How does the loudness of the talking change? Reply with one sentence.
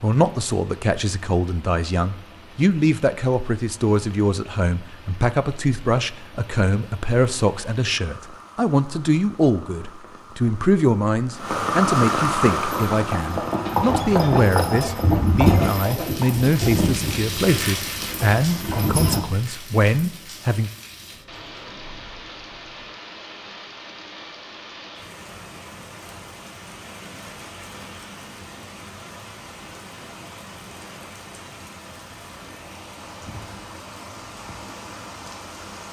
The volume of the talking stays about the same.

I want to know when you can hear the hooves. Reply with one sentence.
The hooves can be heard from 12.6 to 19.2 s.